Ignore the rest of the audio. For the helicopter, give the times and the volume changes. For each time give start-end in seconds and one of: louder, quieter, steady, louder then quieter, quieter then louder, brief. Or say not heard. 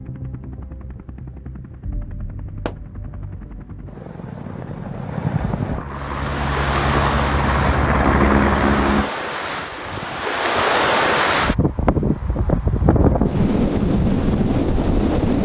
0.0-9.1 louder.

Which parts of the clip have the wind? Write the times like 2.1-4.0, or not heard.
5.8-15.3.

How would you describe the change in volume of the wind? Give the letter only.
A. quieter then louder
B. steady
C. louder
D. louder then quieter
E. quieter
C.